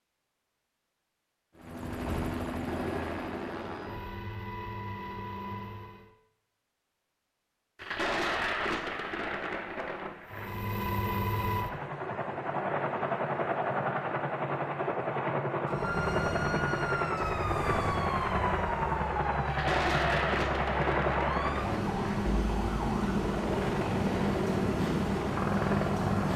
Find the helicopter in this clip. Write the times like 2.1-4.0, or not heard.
1.6-6.1, 10.2-26.3.